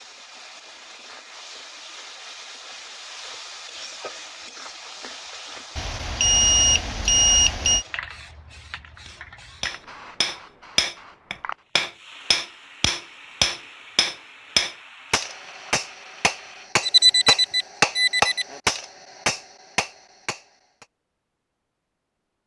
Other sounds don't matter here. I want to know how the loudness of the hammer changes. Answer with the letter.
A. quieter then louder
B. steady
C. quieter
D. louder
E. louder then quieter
B.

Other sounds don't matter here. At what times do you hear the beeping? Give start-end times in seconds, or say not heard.
5.8-7.8, 16.8-18.4.